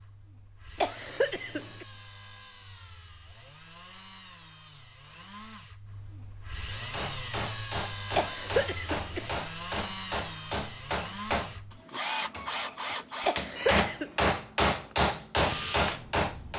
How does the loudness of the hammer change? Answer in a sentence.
The volume of the hammer goes up.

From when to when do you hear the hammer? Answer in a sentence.
The hammer can be heard from 6.6 to 16.5 s.